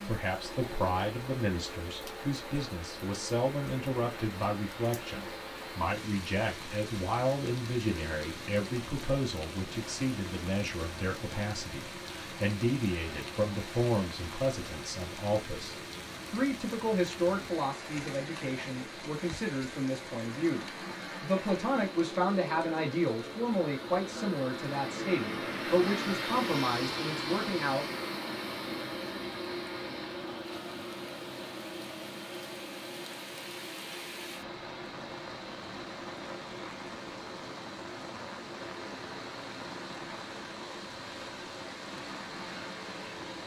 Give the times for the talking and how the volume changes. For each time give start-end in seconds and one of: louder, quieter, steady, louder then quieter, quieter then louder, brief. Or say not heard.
0.0-27.9 steady.